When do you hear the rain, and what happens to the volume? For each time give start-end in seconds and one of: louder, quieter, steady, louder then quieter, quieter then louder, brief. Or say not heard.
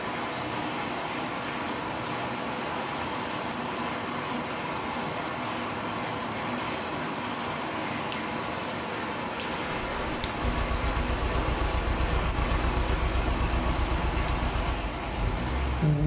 0.0-16.0 steady.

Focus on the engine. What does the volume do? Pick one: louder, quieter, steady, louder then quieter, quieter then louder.
steady.